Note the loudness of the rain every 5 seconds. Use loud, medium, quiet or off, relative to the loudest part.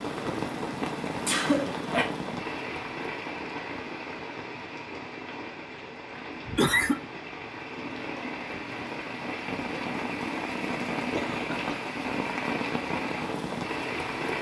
loud, medium, loud.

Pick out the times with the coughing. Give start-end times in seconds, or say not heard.
1.2-2.1, 6.5-7.0, 11.1-11.8.